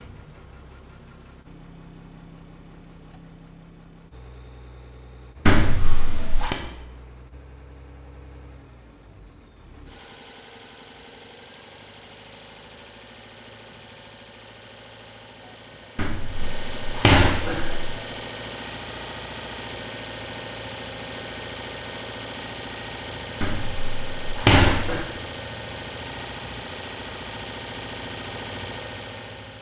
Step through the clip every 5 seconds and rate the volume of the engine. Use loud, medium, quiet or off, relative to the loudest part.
quiet, quiet, medium, loud, loud, loud.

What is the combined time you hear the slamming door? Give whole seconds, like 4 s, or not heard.
5 s.